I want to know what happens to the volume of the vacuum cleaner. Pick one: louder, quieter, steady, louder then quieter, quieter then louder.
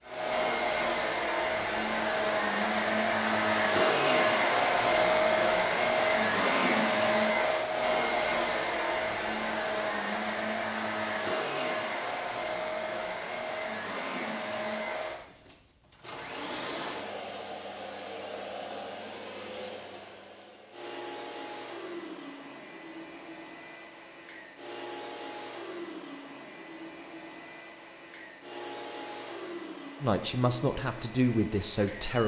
quieter.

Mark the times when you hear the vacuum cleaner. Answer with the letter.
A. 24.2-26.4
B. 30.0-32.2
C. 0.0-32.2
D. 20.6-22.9
C.